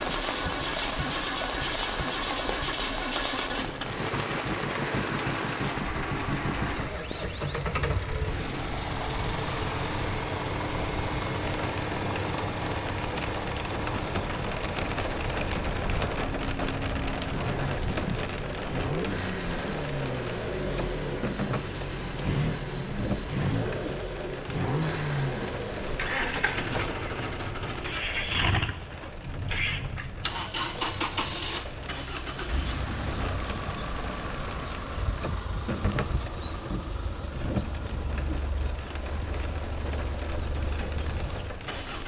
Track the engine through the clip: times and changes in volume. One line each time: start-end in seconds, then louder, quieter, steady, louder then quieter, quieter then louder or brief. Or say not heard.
0.0-42.0 quieter.